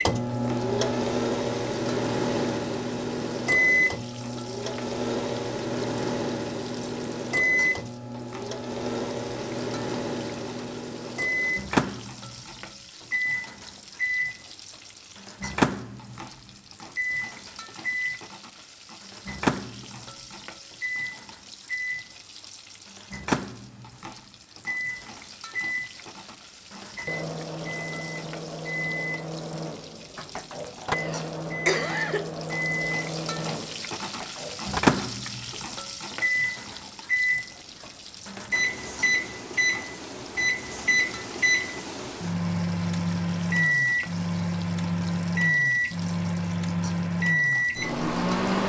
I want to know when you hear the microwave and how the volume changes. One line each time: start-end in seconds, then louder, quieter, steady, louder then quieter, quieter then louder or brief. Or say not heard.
0.0-48.6 quieter then louder.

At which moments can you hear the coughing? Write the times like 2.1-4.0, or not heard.
30.9-32.3.